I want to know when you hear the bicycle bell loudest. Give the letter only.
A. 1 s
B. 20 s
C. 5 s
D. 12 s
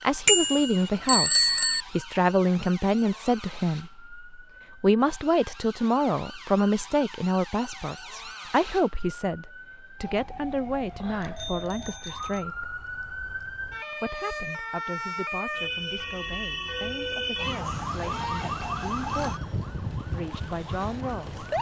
A.